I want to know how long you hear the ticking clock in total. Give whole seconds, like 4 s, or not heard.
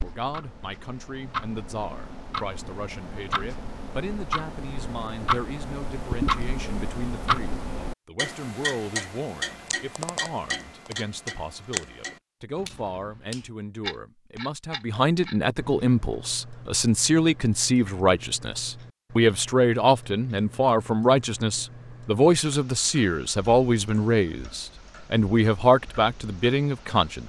27 s.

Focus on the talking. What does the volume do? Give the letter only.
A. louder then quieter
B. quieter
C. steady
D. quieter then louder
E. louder
E.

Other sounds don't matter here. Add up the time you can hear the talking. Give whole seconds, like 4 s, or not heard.
27 s.